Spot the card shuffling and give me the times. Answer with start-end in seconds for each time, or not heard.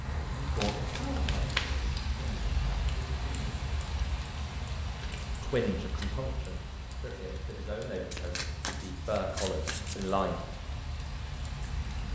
0.6-1.8, 5.0-6.3, 8.1-10.2.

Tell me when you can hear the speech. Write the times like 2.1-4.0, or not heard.
0.0-3.6, 5.4-10.3.